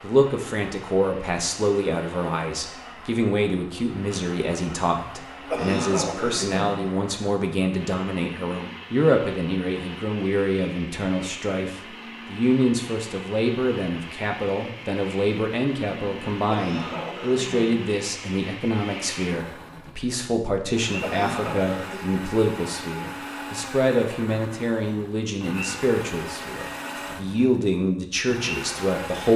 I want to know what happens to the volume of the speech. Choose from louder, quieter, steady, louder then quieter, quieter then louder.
steady.